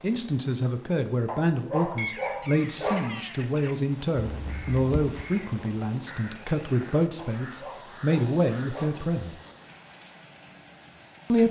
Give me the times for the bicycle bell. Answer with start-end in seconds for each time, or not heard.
2.8-3.2, 8.9-9.7.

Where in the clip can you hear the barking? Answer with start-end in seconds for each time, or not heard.
1.2-3.0, 7.2-9.0.